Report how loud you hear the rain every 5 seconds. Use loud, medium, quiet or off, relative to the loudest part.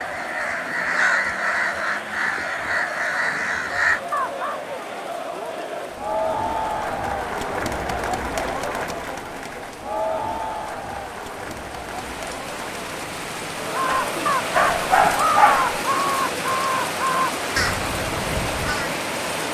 quiet, quiet, medium, loud.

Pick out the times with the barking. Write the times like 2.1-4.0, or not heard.
13.8-15.8.